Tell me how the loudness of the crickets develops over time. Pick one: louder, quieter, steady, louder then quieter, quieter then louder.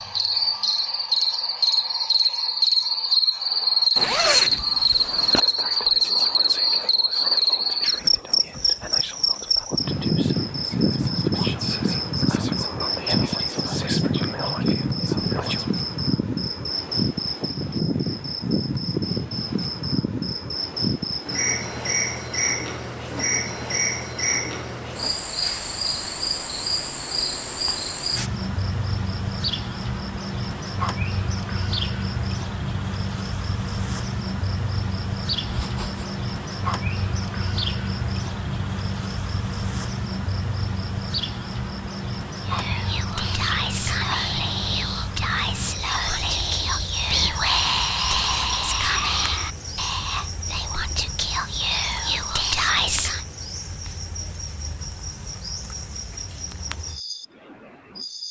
quieter.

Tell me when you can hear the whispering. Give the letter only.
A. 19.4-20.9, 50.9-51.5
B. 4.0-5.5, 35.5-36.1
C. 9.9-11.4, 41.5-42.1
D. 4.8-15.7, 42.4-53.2
D.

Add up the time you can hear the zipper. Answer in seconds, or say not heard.
2 s.